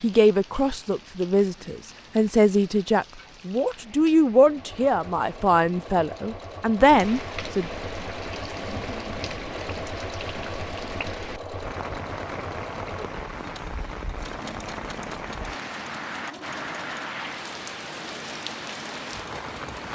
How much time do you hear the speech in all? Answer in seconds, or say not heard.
8 s.